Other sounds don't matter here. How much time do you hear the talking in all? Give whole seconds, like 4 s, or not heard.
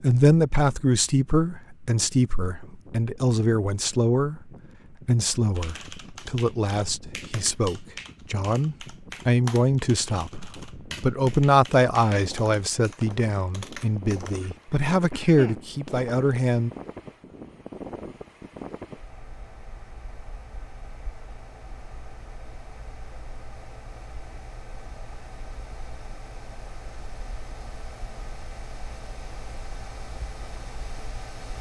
17 s.